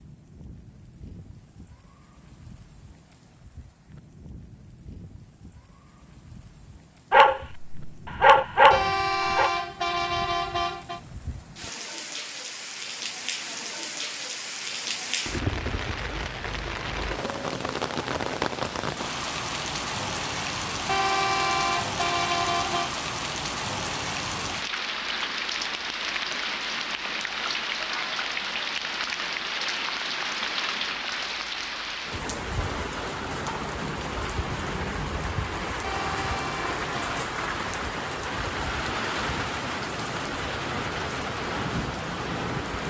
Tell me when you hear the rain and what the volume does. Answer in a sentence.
You can hear the rain from 0.0 to 42.8 s, getting louder.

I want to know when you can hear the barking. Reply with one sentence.
You can hear the barking from 7.1 to 9.5 s.